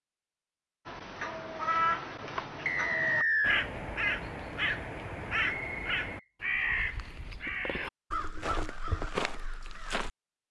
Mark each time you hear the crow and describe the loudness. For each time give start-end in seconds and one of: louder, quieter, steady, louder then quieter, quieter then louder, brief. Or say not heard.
0.8-10.1 steady.